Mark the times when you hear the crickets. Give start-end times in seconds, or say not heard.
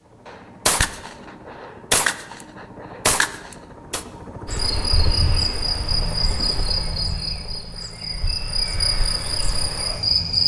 4.5-10.4.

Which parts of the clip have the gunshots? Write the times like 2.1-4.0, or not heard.
0.2-4.0.